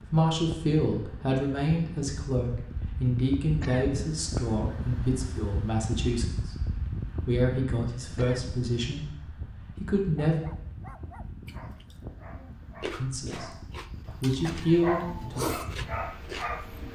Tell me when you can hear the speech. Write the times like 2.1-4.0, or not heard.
0.1-10.3, 12.8-13.6, 14.2-15.5.